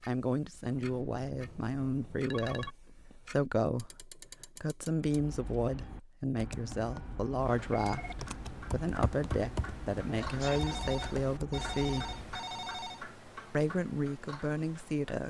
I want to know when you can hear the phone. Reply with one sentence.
You can hear the phone from 0.7 to 2.8 s, from 7.5 to 8.2 s and from 10.3 to 13.1 s.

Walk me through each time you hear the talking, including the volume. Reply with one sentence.
You can hear the talking from 0.0 to 12.2 s, at a steady volume; and briefly from 13.5 to 15.2 s.